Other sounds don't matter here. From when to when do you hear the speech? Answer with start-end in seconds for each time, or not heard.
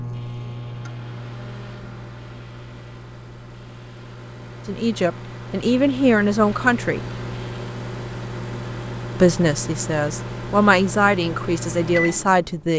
4.7-7.0, 9.2-12.7.